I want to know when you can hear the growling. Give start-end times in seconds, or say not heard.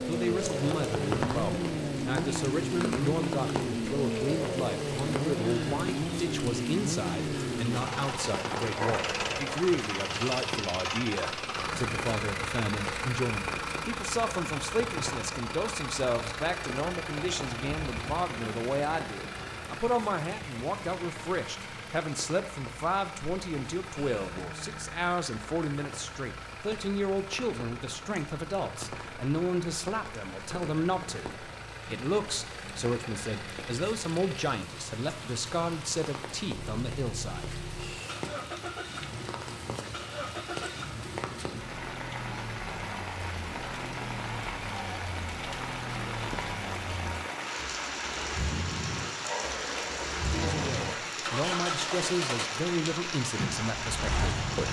8.8-9.7, 49.2-51.1.